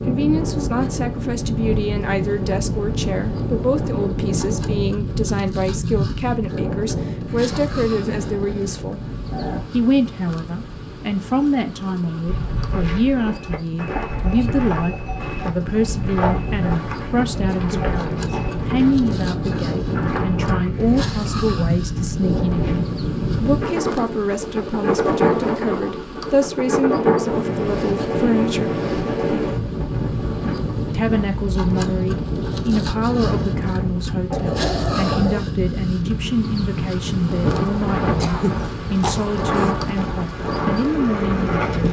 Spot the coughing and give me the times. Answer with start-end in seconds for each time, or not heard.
17.4-18.6, 38.1-39.8.